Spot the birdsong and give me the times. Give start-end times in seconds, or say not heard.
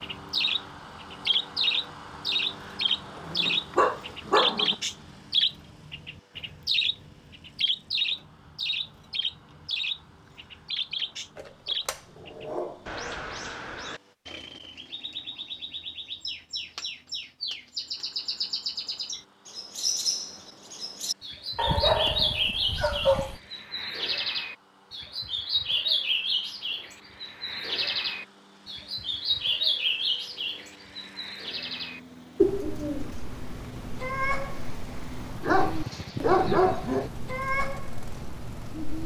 0.0-39.0.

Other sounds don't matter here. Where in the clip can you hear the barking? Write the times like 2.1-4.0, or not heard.
3.2-4.8, 11.3-12.8, 21.6-23.4, 35.4-37.1.